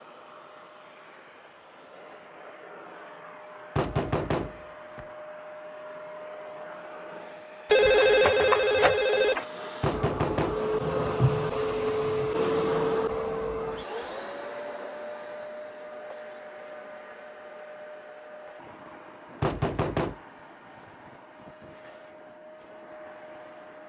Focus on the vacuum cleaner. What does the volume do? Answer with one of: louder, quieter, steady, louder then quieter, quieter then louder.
louder then quieter.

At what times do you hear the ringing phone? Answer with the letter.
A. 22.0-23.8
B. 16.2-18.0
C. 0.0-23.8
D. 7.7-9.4
D.